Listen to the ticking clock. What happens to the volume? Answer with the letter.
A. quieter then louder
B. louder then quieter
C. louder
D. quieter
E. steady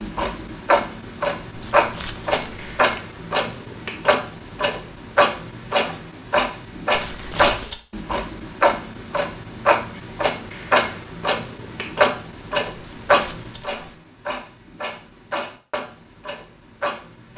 D.